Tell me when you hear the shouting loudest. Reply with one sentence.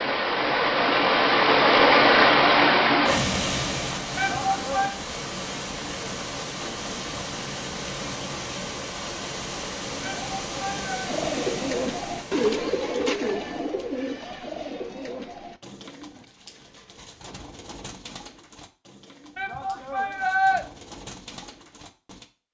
The loudest moment of the shouting is at 20 seconds.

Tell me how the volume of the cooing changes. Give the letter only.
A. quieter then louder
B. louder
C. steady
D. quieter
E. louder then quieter
D.